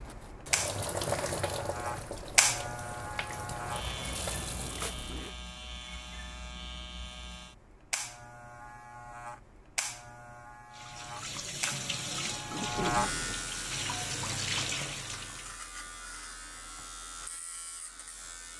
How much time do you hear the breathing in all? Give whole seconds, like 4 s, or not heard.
not heard.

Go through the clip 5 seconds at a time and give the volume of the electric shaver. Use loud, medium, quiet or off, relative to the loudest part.
loud, medium, loud, medium.